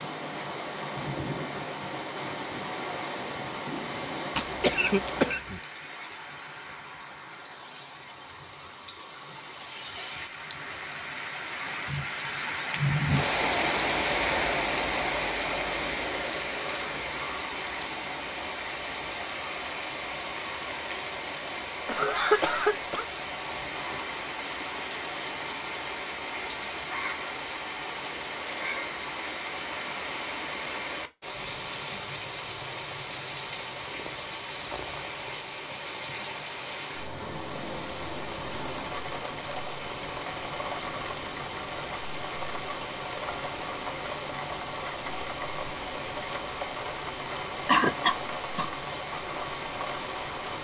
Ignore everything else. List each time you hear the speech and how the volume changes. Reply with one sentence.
You can't hear the speech here.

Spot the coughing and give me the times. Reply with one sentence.
You can hear the coughing from 4.3 to 5.6 s, from 21.9 to 23.1 s and from 47.6 to 48.6 s.